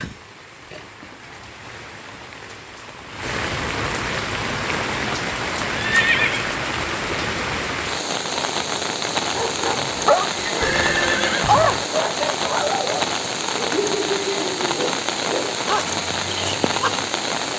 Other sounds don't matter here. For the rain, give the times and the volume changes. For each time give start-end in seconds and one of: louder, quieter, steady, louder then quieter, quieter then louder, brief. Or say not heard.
0.0-17.5 louder.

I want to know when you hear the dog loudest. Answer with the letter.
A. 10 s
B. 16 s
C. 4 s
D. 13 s
A.